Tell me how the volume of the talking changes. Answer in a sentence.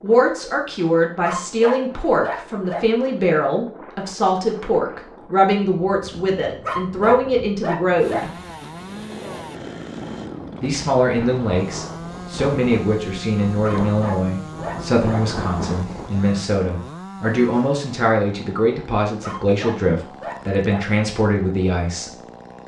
The loudness of the talking stays about the same.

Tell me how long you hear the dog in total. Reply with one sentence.
The dog can be heard for 7 seconds in total.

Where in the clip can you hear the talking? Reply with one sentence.
The talking can be heard from 0.0 to 8.3 s and from 10.6 to 22.1 s.